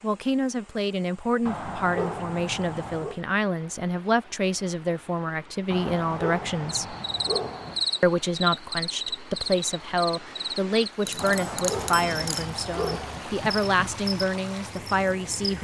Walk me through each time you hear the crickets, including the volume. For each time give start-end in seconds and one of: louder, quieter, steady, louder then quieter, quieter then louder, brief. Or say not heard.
6.8-15.5 quieter.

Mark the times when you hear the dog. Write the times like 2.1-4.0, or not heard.
1.4-3.2, 5.7-7.8, 11.2-14.0.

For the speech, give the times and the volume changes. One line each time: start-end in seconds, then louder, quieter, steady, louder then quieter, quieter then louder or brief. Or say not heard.
0.0-7.0 steady
8.0-15.5 steady.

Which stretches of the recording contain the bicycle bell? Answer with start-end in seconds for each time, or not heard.
11.1-12.5.